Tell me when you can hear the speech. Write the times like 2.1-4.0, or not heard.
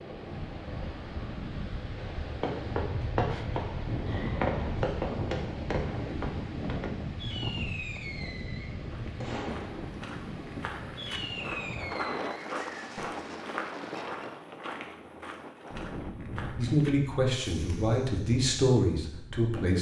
16.6-19.7.